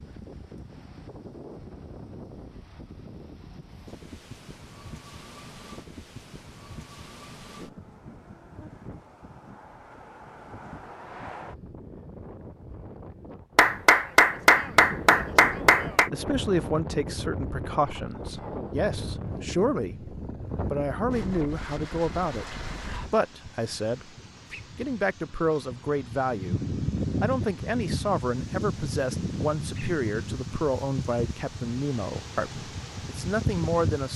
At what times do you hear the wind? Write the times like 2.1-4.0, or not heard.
0.0-34.1.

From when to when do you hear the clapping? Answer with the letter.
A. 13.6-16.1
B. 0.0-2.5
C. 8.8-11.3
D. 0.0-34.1
A.